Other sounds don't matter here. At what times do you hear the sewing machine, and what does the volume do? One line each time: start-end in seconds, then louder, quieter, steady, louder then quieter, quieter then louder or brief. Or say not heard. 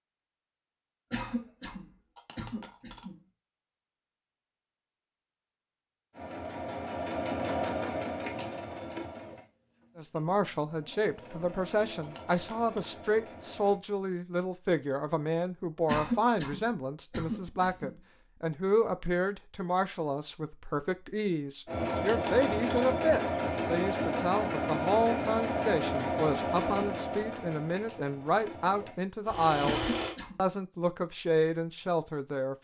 6.1-13.8 quieter then louder
21.6-30.1 quieter.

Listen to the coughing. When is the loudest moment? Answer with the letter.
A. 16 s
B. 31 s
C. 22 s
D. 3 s
A.